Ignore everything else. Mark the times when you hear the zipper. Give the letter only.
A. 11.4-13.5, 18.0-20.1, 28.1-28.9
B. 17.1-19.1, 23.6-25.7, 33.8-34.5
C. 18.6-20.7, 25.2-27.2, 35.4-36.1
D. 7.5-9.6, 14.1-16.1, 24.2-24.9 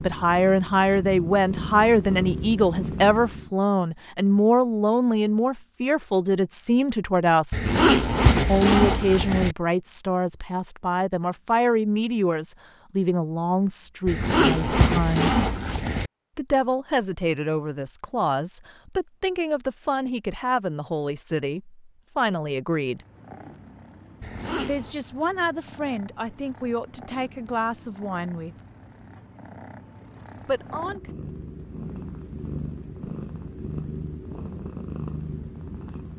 D.